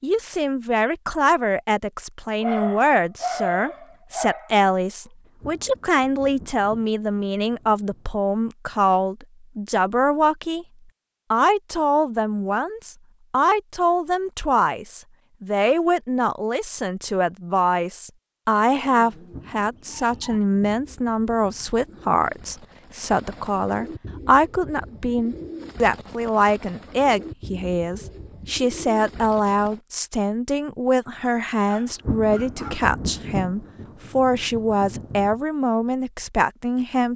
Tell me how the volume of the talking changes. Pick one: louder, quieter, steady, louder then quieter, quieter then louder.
steady.